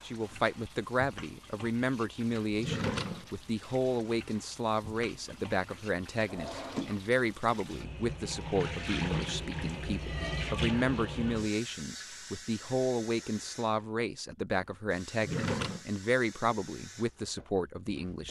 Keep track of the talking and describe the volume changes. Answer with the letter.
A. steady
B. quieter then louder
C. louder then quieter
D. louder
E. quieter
A.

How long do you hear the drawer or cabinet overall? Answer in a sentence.
You can hear the drawer or cabinet for 2 seconds altogether.